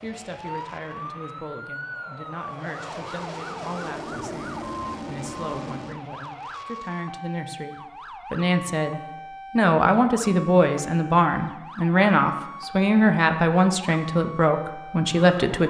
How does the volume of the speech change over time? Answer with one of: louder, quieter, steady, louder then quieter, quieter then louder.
louder.